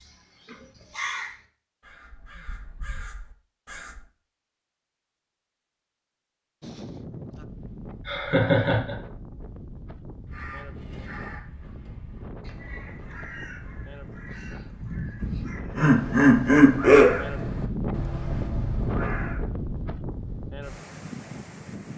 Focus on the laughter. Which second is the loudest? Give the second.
17 s.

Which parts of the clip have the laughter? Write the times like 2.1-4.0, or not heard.
8.1-8.9, 15.2-17.1.